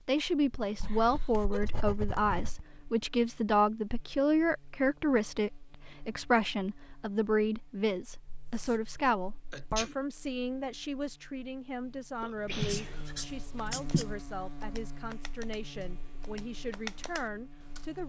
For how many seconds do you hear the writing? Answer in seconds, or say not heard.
5 s.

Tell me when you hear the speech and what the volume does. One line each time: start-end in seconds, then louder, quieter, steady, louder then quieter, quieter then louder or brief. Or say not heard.
0.1-18.0 quieter.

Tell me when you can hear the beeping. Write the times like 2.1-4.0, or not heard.
not heard.